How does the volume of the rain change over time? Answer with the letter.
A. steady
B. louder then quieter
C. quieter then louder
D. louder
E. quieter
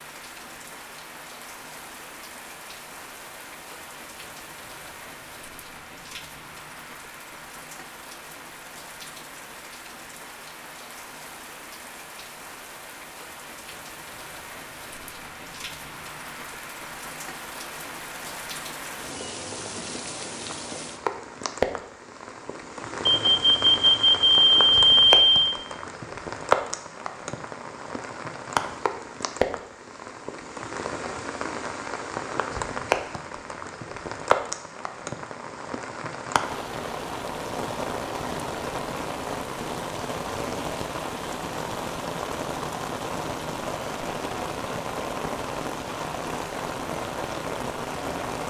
D.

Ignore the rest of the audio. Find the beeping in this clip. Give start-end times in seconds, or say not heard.
23.1-25.5.